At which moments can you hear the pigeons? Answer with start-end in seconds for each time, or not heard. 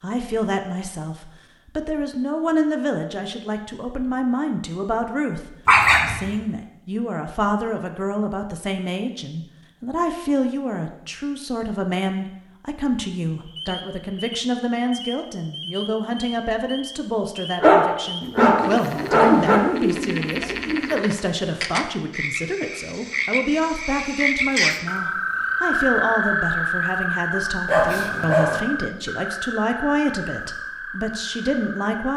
18.2-21.1.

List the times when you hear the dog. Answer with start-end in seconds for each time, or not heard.
5.7-6.3, 17.6-19.6, 27.6-28.6.